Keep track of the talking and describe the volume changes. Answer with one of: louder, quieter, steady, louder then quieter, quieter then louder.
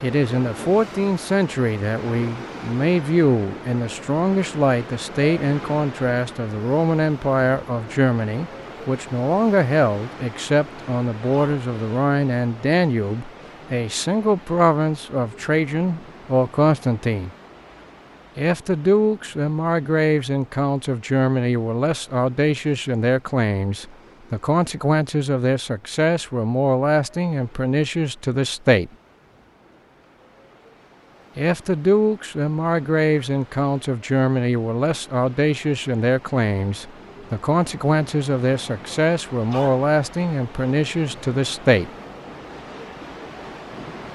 steady.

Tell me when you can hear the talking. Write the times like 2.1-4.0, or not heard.
0.0-17.3, 18.4-28.9, 31.4-41.9.